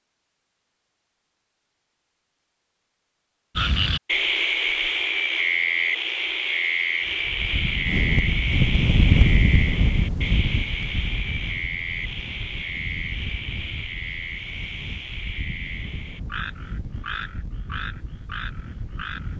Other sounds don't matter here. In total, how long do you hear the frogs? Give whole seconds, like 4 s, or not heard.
16 s.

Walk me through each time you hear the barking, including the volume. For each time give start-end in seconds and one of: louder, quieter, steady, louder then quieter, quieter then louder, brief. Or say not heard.
not heard.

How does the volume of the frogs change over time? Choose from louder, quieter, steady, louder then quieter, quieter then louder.
quieter.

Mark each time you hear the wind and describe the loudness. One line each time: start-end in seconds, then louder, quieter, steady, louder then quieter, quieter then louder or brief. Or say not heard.
7.0-19.3 quieter.